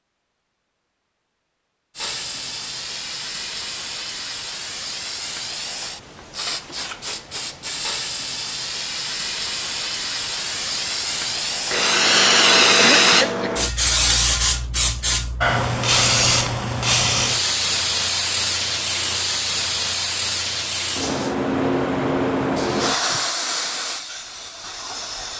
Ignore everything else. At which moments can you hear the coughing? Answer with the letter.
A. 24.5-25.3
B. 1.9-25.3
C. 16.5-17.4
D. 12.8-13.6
D.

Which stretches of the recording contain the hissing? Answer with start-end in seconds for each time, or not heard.
1.9-25.3.